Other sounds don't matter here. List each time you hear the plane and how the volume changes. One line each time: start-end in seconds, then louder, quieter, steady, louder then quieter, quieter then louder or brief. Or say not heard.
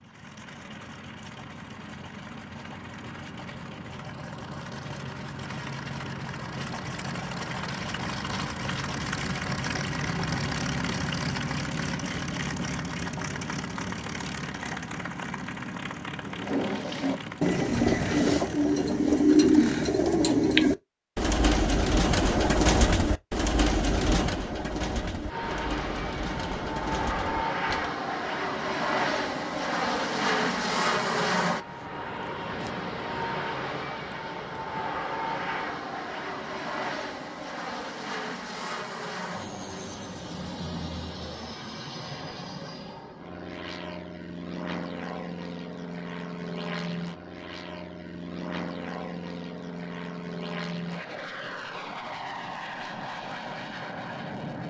0.0-19.9 louder then quieter
25.2-54.6 quieter.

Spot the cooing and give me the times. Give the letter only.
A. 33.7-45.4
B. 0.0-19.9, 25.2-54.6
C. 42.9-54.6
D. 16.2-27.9
D.